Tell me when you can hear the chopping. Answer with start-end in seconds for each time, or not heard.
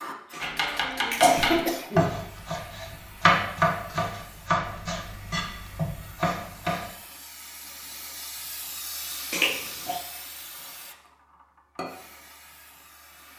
0.4-6.9.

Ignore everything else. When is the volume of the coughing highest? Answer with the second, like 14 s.
1 s.